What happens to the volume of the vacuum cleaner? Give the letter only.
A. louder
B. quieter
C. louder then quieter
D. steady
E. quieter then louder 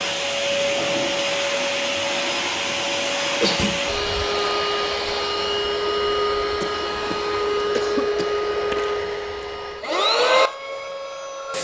D.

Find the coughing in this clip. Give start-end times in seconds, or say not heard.
3.2-3.8, 6.6-8.3.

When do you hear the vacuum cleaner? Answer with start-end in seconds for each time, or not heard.
0.0-11.5.